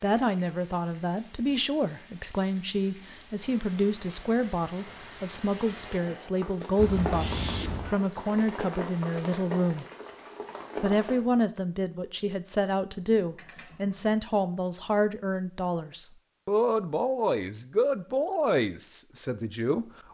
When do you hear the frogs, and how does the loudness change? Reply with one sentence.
You can't hear the frogs here.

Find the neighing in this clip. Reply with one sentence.
You can hear the neighing from 6.8 to 8.0 s and from 13.2 to 14.2 s.